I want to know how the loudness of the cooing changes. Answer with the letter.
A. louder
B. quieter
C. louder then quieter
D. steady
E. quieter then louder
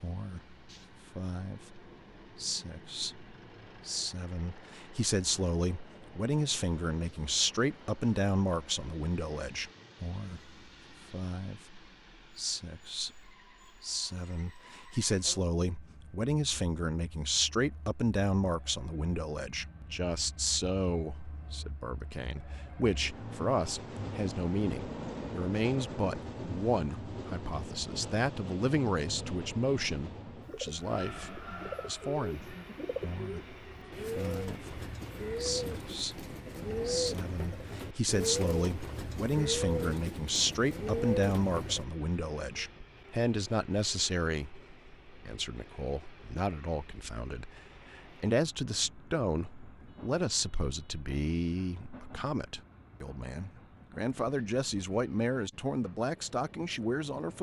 A.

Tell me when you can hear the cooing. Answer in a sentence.
The cooing can be heard from 30.4 to 41.9 s.